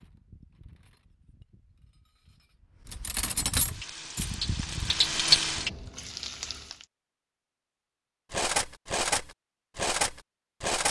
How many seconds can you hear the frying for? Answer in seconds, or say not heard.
3 s.